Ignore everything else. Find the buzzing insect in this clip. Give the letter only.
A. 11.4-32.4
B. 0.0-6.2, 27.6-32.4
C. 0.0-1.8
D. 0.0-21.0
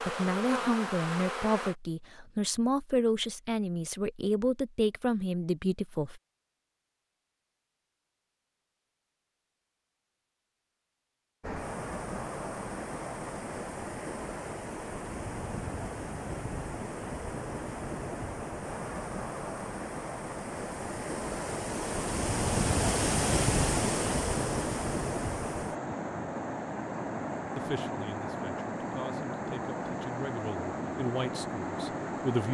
C.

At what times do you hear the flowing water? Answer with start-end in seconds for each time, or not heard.
11.4-32.4.